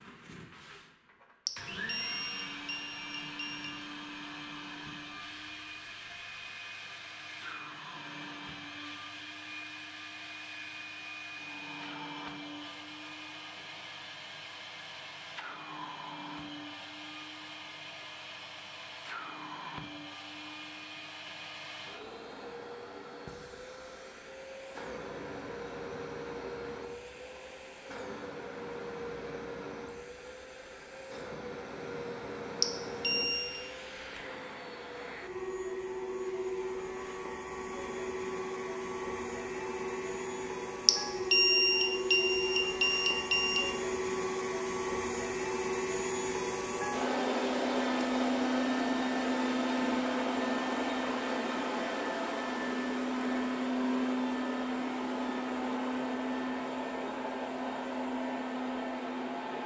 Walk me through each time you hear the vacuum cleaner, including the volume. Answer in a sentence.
The vacuum cleaner can be heard from 0.0 to 59.6 s, getting louder.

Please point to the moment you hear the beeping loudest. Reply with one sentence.
The volume of the beeping peaks at 41 seconds.